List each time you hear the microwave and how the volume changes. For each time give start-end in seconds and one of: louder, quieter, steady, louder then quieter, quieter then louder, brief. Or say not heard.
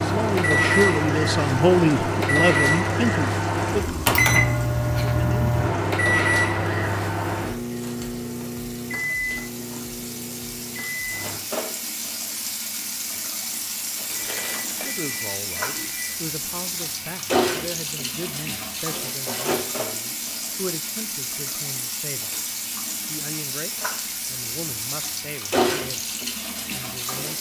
0.0-11.4 quieter.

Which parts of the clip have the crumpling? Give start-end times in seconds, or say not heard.
13.8-14.9.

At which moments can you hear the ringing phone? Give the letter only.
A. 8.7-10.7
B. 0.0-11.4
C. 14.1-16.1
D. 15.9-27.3
C.